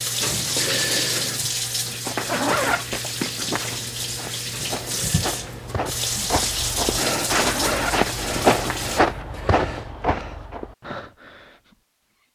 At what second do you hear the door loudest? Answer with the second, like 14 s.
1 s.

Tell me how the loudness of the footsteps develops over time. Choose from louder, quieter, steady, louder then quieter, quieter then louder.
louder then quieter.